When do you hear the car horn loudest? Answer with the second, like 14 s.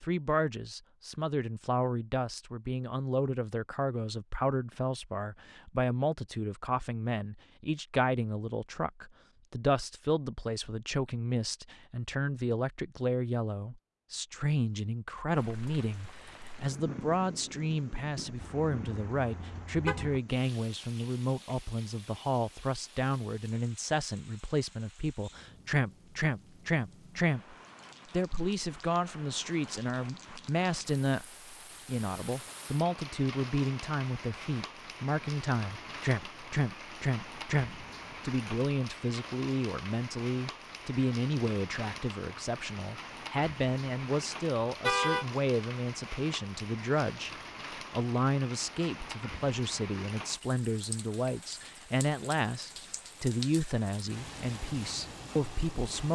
45 s.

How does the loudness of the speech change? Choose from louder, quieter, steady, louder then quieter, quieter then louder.
steady.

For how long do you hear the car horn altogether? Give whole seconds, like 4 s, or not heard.
2 s.